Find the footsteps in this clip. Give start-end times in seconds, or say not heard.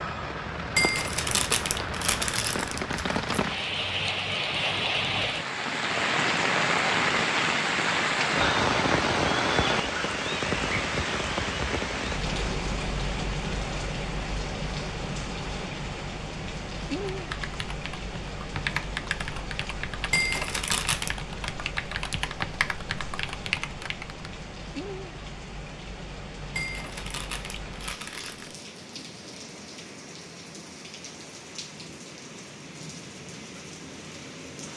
not heard.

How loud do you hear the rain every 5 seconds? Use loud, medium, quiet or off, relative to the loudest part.
medium, loud, medium, medium, quiet, quiet, quiet.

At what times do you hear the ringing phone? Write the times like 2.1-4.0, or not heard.
not heard.